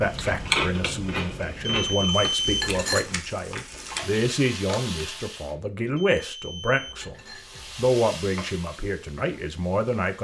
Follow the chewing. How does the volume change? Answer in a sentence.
The loudness of the chewing goes down.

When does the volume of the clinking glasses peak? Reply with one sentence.
The loudest moment of the clinking glasses is at 3 seconds.